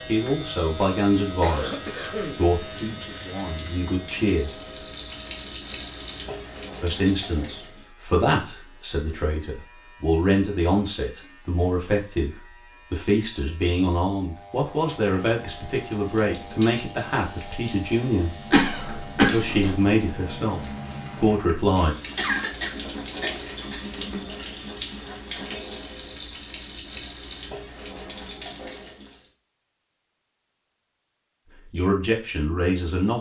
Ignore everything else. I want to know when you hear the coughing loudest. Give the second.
19 s.